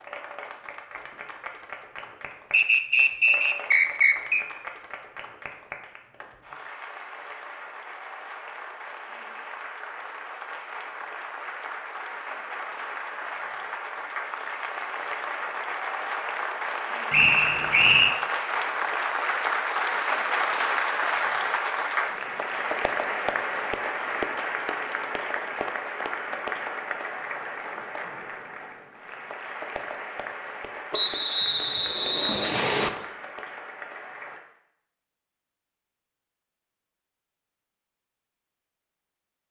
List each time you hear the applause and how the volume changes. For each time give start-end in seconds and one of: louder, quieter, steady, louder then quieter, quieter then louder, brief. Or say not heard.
0.0-34.4 louder then quieter.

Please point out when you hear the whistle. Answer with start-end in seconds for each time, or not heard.
2.5-4.5, 17.1-18.1, 30.9-32.9.